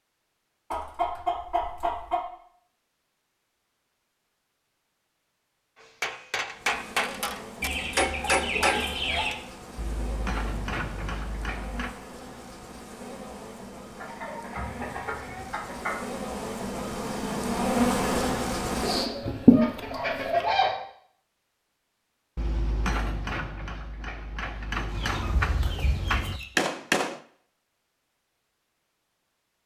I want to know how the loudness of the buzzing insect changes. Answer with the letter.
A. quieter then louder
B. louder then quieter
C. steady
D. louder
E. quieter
D.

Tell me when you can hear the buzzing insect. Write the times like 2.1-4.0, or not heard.
6.5-20.4.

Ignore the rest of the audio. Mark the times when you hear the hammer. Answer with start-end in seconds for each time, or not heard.
5.8-11.9, 22.4-27.2.